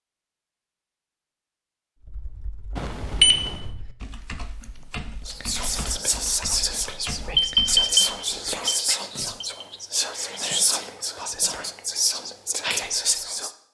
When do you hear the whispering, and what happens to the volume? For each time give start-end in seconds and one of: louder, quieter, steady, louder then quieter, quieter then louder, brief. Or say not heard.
5.2-13.5 steady.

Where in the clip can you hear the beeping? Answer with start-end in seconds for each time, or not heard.
2.8-3.6, 7.3-9.7.